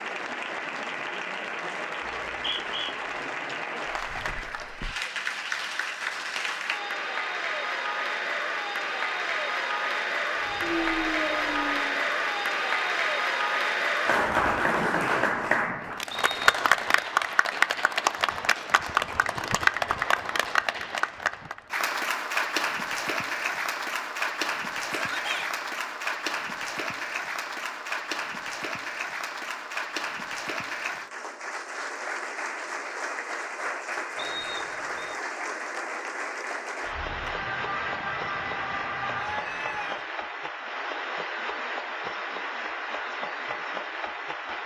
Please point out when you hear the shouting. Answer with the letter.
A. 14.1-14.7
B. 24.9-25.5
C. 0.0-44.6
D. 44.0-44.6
B.